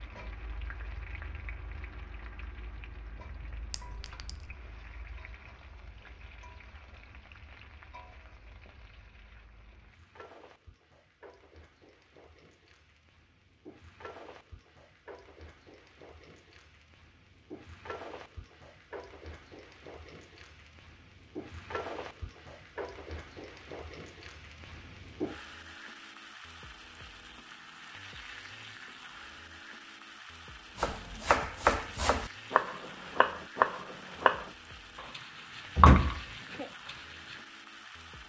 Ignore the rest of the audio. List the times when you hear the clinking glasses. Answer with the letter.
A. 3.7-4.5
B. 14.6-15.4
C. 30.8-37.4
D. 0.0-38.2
A.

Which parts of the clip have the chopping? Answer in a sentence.
The chopping can be heard from 30.8 to 37.4 s.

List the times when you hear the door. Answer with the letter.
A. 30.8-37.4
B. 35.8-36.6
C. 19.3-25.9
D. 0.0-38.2
B.